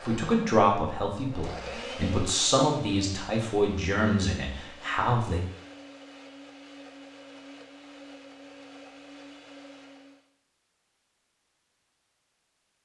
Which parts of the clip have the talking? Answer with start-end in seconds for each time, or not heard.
0.0-5.4.